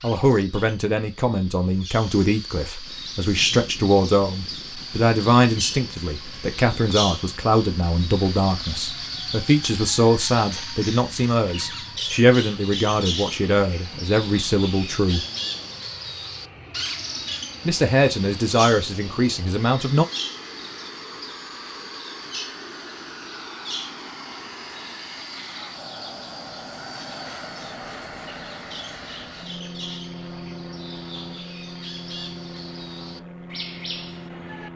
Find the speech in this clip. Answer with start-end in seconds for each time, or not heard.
0.0-15.2, 17.6-20.1.